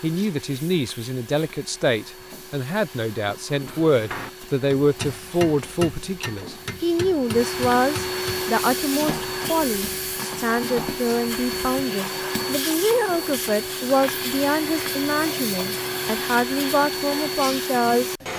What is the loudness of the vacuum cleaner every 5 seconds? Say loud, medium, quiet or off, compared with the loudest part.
quiet, loud, loud, loud.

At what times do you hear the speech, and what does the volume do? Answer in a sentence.
The speech can be heard from 0.0 to 18.1 s, at a steady volume.